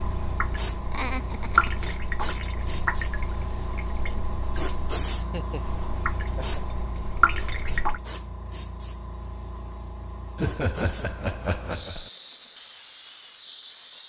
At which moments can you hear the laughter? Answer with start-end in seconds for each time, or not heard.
0.9-1.8, 5.2-6.6, 10.3-12.1.